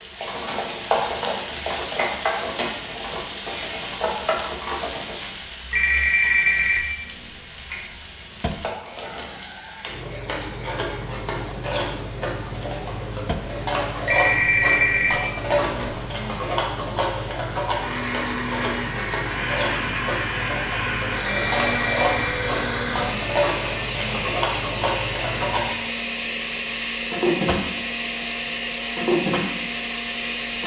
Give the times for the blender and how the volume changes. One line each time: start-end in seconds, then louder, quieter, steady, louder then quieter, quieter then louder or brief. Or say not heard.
17.8-30.6 steady.